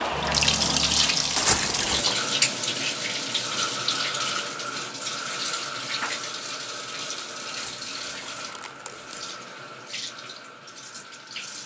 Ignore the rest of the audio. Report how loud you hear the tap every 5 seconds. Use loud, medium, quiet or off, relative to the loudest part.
loud, medium, quiet.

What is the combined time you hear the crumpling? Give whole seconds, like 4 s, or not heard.
3 s.